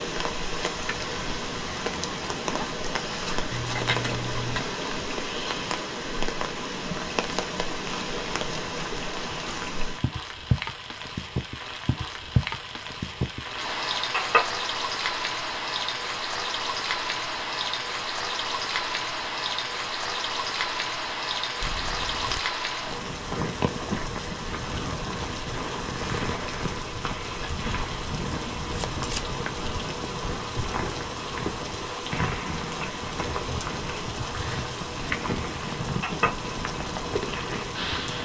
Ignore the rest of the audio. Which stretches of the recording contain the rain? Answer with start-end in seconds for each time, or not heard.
0.0-38.1.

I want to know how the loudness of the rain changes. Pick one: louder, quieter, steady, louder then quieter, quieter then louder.
steady.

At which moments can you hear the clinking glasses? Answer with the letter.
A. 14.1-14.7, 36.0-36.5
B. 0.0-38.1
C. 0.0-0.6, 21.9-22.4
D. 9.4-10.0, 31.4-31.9
A.